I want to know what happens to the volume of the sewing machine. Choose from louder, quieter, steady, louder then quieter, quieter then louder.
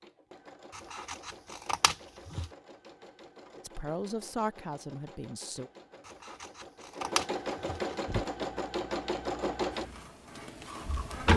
louder.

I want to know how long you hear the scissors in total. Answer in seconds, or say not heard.
4 s.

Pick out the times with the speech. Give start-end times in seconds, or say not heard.
3.5-5.7.